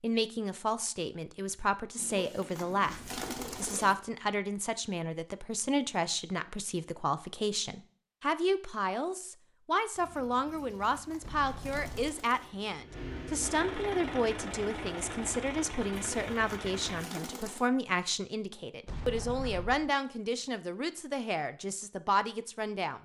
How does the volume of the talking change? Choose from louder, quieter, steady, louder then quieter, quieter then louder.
steady.